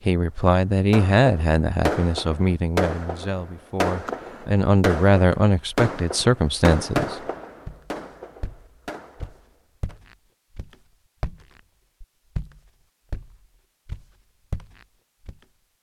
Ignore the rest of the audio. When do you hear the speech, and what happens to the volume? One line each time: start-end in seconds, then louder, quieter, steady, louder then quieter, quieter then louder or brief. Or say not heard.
0.1-7.2 quieter then louder.